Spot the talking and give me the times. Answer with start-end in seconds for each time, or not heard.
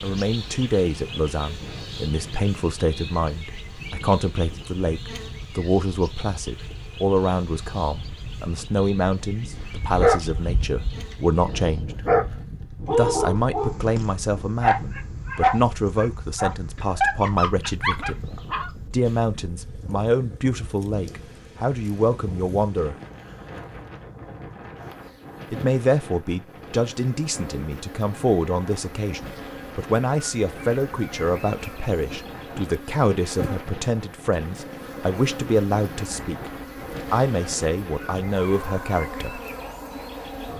0.0-12.0, 12.9-18.1, 18.9-22.9, 25.5-39.4.